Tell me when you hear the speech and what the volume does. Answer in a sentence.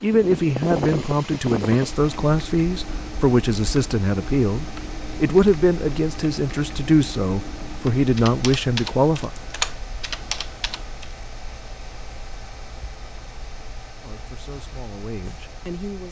You can hear the speech from 0.0 to 9.3 s, at a steady volume; and briefly from 14.0 to 16.0 s.